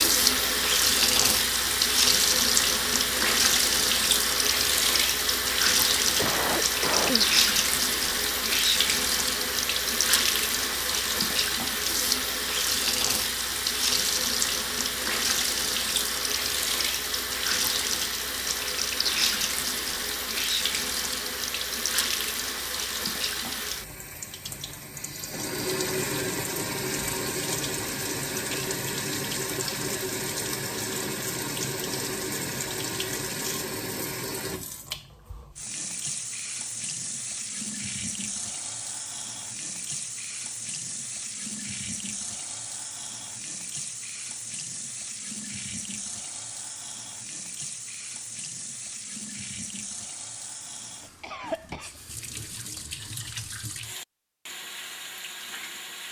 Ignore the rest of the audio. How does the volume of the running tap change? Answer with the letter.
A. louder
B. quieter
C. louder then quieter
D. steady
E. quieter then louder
B.